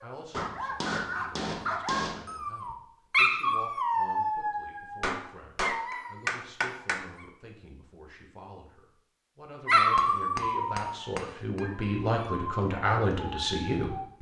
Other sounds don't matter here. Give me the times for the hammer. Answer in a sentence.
The hammer can be heard from 0.3 to 2.3 s, from 5.0 to 7.1 s and from 9.9 to 11.6 s.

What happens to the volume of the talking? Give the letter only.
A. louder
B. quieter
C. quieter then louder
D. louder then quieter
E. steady
A.